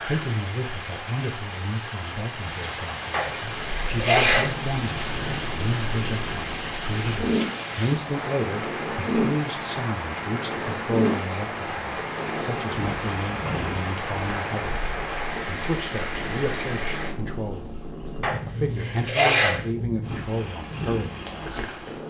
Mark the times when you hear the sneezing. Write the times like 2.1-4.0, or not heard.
3.1-4.6, 18.2-19.6.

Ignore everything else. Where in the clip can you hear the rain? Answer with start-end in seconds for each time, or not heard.
0.0-17.1.